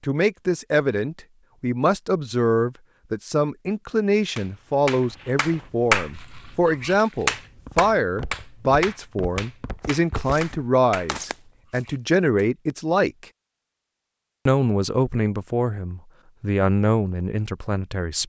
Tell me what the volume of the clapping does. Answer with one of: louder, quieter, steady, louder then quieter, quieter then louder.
quieter.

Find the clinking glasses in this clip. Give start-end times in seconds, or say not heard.
not heard.